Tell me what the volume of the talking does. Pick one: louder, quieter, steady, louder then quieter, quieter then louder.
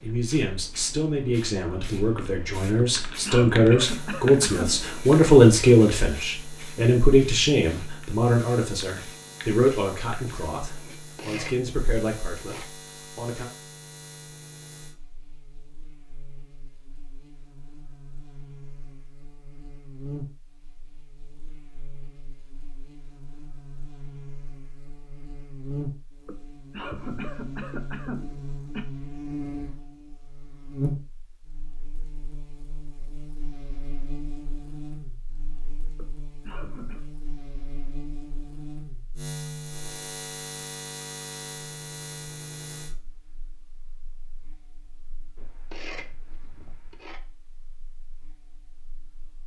louder then quieter.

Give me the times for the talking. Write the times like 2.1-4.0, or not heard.
0.0-13.5.